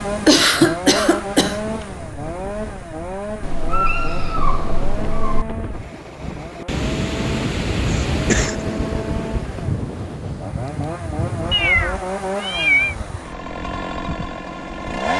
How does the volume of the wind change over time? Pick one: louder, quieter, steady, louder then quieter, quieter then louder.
louder then quieter.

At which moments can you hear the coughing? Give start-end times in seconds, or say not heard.
0.2-1.6, 7.9-8.6.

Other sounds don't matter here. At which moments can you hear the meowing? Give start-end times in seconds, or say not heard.
3.4-5.5, 11.5-12.9.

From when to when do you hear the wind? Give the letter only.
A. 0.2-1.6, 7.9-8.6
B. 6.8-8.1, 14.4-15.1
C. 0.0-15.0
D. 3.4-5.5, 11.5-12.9
C.